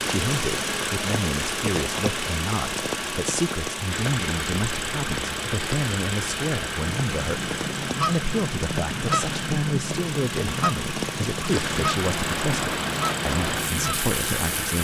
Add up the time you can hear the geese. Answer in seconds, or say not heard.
7 s.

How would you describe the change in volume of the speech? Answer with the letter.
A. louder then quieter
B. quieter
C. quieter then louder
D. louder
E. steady
E.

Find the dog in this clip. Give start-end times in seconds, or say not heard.
not heard.